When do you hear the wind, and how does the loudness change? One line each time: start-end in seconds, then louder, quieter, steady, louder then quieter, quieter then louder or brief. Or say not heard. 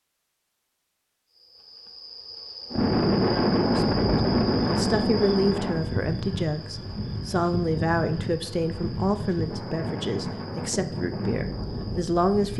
2.7-12.5 quieter.